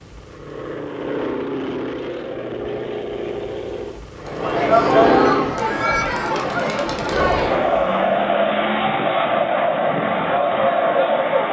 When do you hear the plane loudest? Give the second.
5 s.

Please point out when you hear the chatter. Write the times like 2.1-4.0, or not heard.
4.2-11.4.